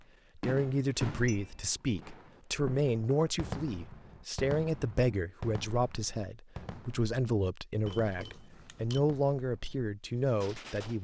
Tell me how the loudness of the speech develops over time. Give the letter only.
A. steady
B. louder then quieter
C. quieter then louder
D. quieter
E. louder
A.